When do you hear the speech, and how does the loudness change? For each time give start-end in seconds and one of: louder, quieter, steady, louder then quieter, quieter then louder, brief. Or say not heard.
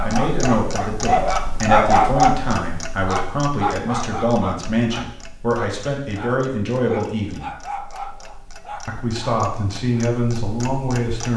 0.0-7.5 steady
8.8-11.3 brief.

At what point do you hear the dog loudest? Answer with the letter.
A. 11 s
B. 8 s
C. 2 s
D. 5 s
C.